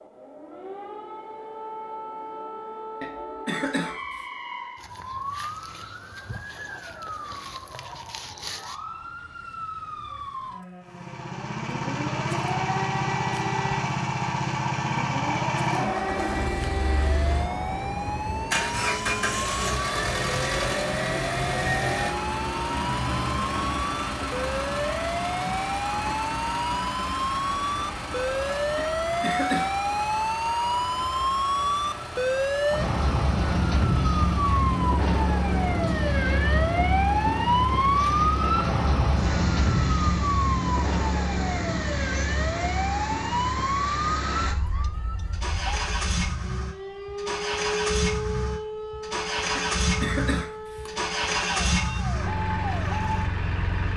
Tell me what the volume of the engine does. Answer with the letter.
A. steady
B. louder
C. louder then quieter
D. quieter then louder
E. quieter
D.